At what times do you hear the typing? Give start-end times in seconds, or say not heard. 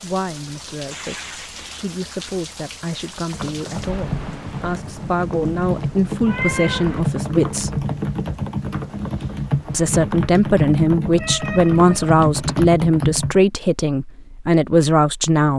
3.3-13.4.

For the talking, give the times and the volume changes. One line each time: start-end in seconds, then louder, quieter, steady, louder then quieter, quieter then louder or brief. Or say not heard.
0.0-7.8 louder
9.7-15.5 steady.